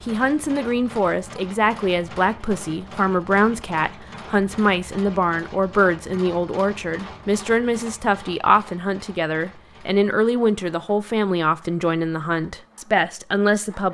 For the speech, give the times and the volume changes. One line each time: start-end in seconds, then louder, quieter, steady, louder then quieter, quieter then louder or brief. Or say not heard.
0.0-13.9 steady.